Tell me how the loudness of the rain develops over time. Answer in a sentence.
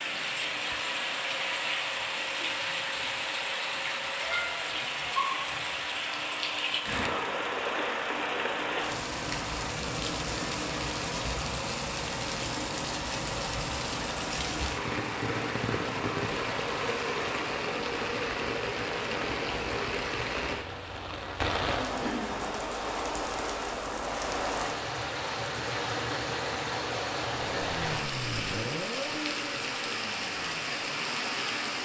The volume of the rain stays about the same.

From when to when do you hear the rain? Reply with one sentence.
You can hear the rain from 0.0 to 31.7 s.